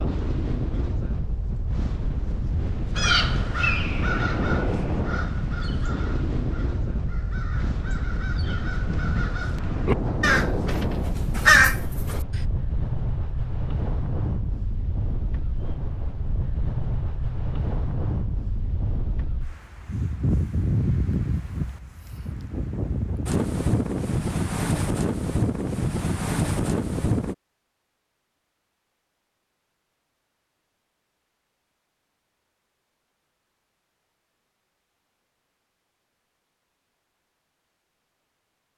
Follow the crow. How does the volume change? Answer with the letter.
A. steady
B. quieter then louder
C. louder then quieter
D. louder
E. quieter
B.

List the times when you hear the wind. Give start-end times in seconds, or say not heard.
0.0-27.4.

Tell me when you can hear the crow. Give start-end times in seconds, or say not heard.
3.0-12.4.